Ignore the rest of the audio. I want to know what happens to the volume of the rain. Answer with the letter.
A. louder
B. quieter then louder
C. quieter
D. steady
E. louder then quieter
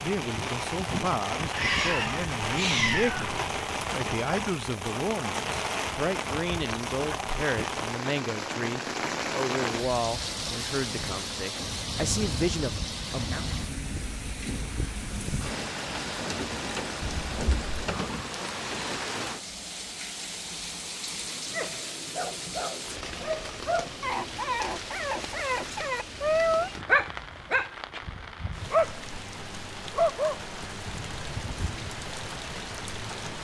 C.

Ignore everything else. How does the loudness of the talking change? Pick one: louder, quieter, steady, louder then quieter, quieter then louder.
steady.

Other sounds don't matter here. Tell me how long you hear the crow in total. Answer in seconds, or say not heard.
not heard.